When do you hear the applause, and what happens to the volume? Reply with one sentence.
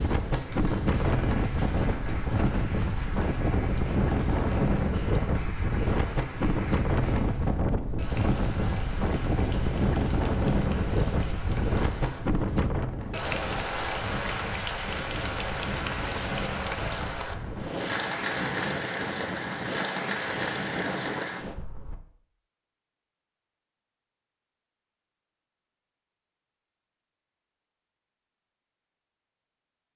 You can hear the applause from 0.0 to 21.4 s, getting louder.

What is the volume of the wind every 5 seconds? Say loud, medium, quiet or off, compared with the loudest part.
loud, loud, loud, medium, medium, off.